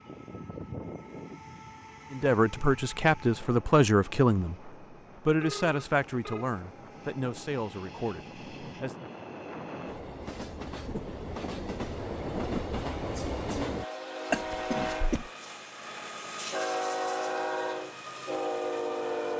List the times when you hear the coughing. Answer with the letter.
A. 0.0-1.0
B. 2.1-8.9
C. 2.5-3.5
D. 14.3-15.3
D.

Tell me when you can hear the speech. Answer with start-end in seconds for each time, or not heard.
2.1-8.9.